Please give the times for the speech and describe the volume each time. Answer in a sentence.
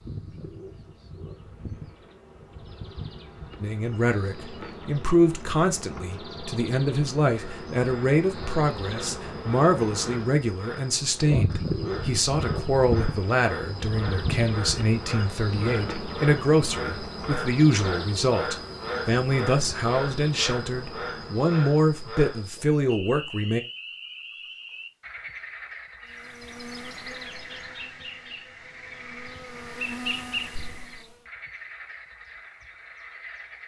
The speech can be heard from 3.6 to 23.6 s, at a steady volume.